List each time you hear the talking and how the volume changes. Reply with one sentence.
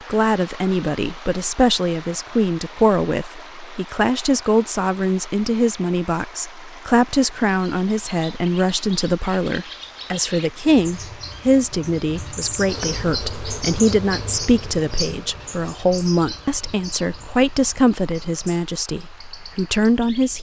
The talking can be heard from 0.1 to 20.3 s, at a steady volume.